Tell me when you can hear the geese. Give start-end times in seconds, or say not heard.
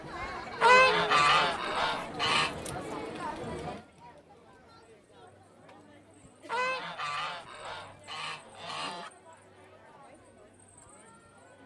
0.6-2.5, 6.5-9.1.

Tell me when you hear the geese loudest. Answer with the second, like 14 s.
1 s.